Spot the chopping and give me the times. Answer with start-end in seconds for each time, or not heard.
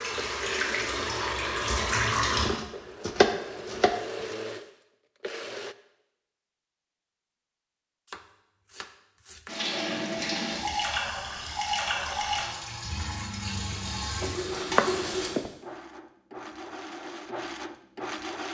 2.4-4.3, 8.1-9.6, 13.5-15.5.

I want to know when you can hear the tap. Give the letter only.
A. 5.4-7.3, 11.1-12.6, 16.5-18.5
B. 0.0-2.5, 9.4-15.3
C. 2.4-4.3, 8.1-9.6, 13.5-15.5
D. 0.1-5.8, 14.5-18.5
B.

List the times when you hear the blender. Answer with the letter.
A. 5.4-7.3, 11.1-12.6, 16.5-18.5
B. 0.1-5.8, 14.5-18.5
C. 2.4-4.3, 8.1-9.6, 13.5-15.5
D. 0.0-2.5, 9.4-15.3
B.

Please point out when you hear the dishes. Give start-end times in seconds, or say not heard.
not heard.